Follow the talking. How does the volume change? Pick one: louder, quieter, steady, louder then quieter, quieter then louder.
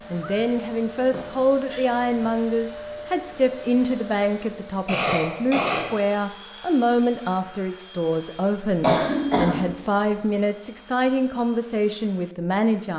steady.